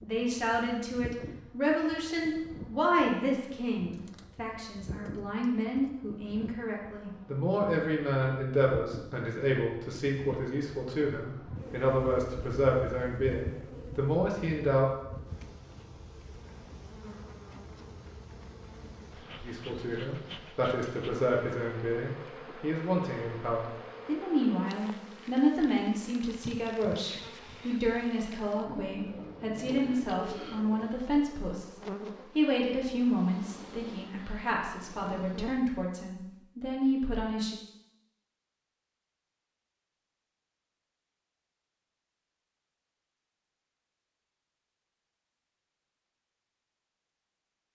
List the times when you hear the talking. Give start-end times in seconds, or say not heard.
0.0-14.8, 19.4-37.5.